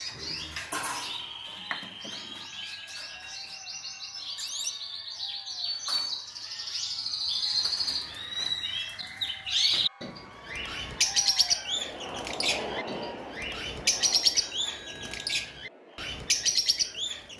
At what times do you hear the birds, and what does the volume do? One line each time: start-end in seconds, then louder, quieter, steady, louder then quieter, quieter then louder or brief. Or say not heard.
0.0-17.3 louder.